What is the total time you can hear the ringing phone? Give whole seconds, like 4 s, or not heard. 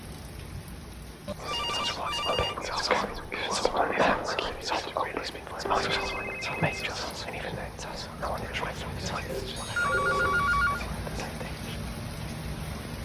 4 s.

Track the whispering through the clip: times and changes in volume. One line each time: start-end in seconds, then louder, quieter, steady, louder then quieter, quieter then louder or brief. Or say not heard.
1.4-11.8 quieter.